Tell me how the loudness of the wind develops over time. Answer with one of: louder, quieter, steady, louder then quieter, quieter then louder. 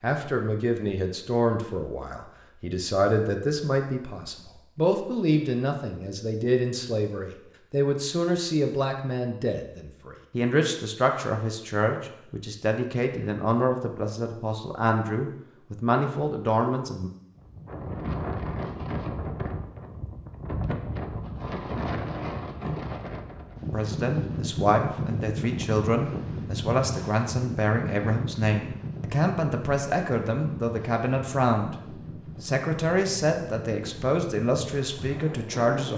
quieter.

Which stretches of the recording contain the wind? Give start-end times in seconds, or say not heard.
17.4-35.9.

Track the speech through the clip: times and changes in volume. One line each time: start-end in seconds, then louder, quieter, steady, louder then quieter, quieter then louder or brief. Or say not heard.
0.0-17.1 steady
23.7-35.9 steady.